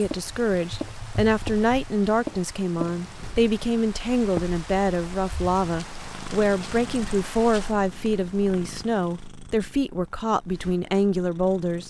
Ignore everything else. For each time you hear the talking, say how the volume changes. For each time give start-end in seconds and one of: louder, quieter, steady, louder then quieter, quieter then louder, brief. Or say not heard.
0.0-11.8 steady.